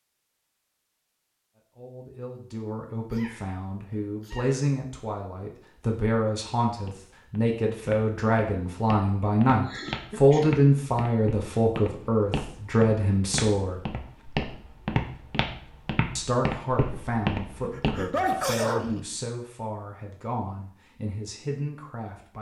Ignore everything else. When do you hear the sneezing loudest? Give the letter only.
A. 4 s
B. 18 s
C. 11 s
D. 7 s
B.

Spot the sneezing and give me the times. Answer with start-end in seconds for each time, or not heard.
2.9-4.6, 9.6-10.6, 17.6-19.1.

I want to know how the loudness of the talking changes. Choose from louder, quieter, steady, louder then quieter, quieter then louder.
louder then quieter.